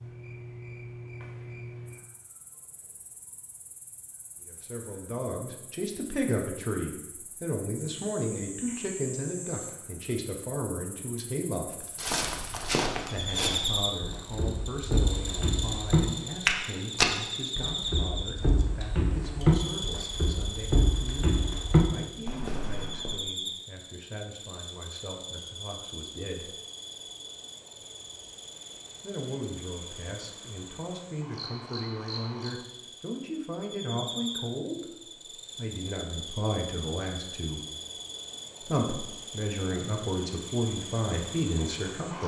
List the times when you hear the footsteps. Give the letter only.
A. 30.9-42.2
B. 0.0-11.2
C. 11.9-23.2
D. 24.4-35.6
C.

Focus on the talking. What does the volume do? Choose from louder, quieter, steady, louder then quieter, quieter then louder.
quieter then louder.